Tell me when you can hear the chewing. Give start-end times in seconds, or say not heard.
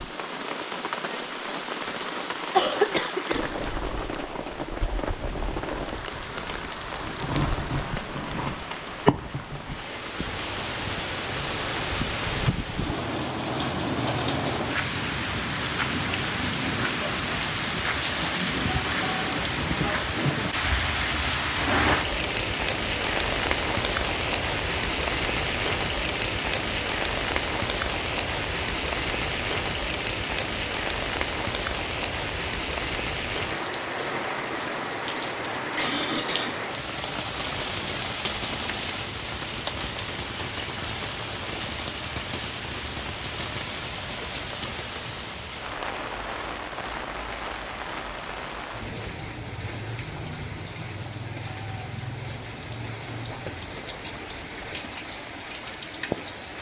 not heard.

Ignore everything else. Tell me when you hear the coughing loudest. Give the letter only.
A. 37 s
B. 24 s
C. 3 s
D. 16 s
C.